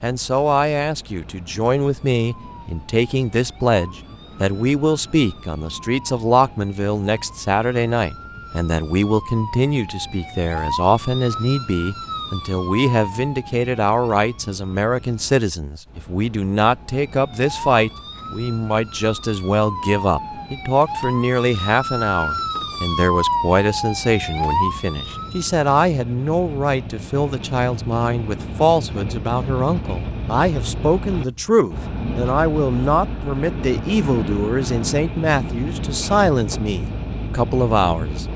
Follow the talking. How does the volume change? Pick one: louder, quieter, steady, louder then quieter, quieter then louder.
steady.